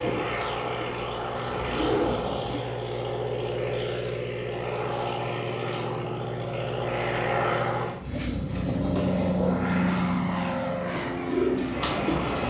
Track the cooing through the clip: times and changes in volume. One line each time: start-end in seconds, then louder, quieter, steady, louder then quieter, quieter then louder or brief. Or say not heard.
0.0-2.6 brief
8.0-12.4 quieter then louder.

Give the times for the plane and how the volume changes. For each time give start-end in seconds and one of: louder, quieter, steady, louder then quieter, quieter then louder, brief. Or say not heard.
0.0-12.4 steady.